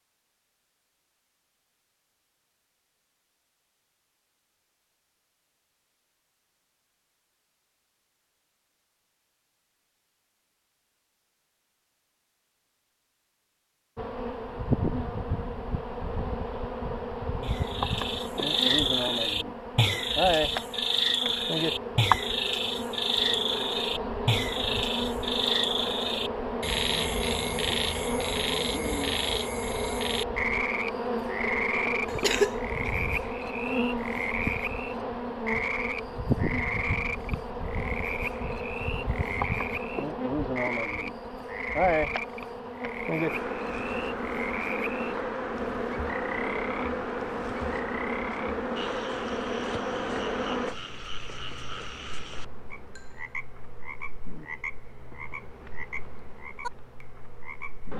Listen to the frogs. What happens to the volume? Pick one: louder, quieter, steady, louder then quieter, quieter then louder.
quieter.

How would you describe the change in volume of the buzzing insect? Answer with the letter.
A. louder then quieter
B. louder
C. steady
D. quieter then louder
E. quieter
E.